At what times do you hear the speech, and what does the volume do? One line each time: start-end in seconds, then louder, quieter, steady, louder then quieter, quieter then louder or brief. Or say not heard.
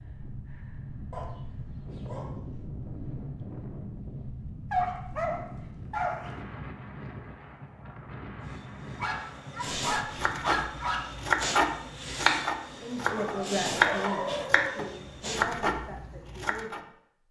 12.7-17.2 quieter.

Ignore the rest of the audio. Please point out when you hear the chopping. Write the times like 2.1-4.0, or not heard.
10.1-16.8.